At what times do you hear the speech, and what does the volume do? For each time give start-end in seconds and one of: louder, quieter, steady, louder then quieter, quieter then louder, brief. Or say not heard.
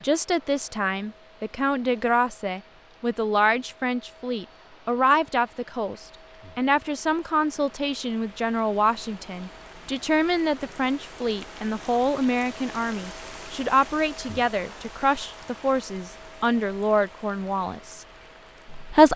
0.0-18.1 steady
18.6-19.1 brief.